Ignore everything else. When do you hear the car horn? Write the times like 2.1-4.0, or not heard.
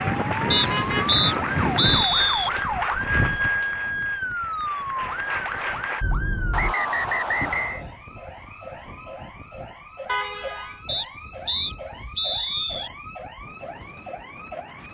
0.5-1.1, 6.0-6.8, 10.1-10.8.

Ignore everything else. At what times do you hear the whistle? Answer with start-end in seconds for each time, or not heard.
0.5-2.5, 6.5-7.8, 10.8-12.9.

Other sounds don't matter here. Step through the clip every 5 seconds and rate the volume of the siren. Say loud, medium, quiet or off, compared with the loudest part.
loud, medium, quiet.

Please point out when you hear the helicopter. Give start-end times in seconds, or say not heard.
not heard.